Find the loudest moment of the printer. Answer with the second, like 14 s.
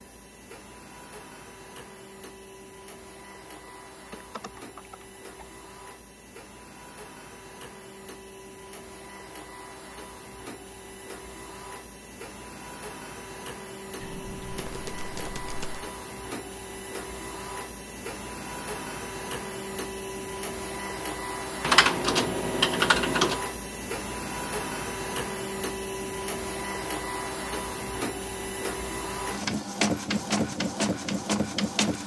30 s.